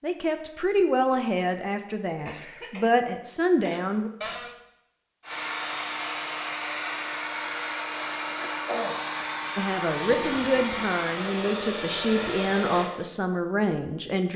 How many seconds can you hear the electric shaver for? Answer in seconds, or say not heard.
not heard.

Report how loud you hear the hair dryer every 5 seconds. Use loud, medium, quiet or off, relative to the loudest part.
off, loud, loud.